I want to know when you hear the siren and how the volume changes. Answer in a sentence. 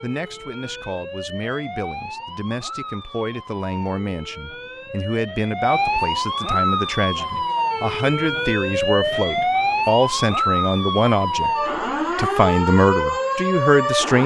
The siren can be heard from 0.0 to 14.2 s, getting louder.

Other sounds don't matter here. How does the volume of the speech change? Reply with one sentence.
The loudness of the speech goes up.